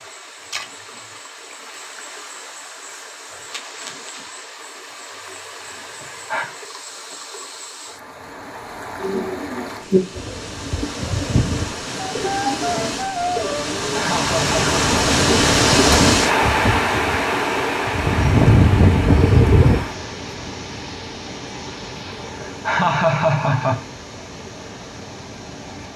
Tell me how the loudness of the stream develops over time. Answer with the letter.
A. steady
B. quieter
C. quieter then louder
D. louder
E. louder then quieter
E.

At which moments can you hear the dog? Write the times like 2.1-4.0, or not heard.
not heard.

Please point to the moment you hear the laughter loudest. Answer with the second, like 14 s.
23 s.